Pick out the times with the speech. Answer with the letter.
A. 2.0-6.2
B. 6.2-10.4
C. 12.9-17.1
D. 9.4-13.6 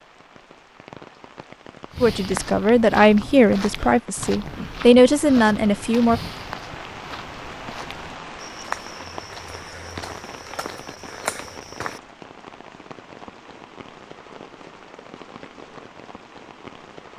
A.